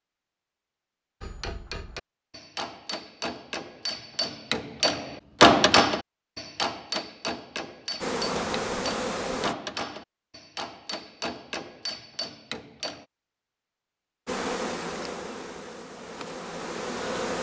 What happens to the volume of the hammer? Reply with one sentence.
The volume of the hammer goes up, then down.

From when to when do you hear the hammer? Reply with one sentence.
The hammer can be heard from 1.2 to 13.1 s.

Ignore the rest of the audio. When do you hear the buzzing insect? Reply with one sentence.
You can hear the buzzing insect from 8.0 to 9.6 s and from 14.2 to 17.3 s.